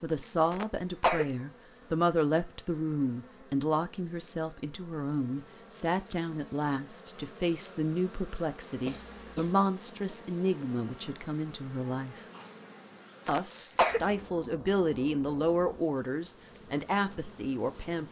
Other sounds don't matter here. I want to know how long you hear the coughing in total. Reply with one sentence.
The coughing can be heard for 2 seconds in total.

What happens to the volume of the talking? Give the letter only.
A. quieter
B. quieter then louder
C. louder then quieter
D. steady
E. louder
D.